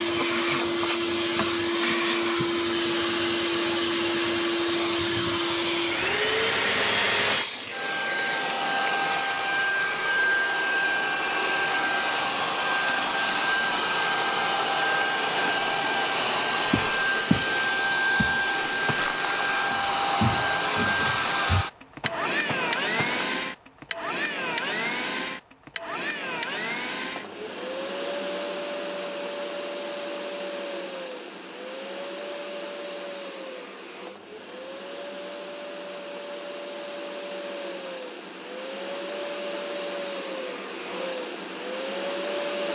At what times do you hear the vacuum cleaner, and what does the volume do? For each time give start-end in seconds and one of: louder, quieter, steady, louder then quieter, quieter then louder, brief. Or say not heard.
0.0-42.7 quieter.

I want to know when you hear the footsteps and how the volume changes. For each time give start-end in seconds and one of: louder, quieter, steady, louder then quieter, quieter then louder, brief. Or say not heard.
16.7-17.5 brief
18.1-23.3 louder then quieter.